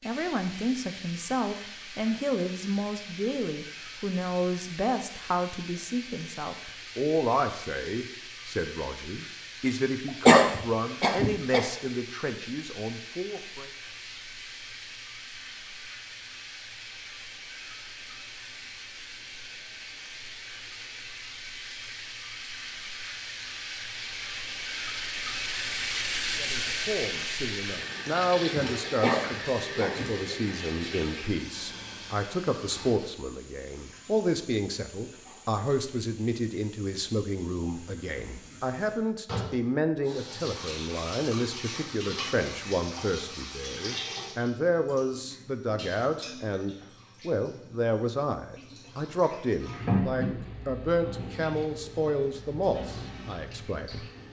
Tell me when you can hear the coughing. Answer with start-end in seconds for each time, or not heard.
10.1-11.7, 28.9-30.1.